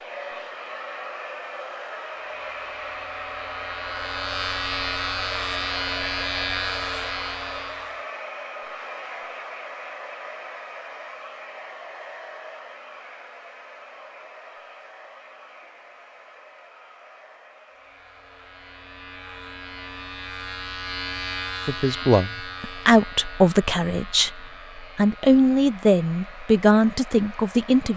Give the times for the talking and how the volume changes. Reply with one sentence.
You can hear the talking from 21.6 to 27.9 s, at a steady volume.